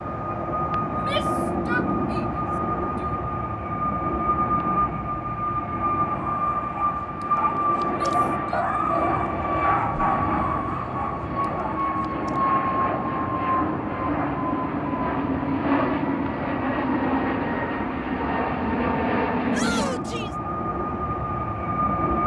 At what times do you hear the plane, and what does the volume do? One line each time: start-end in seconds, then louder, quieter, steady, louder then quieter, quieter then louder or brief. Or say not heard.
0.0-22.2 steady.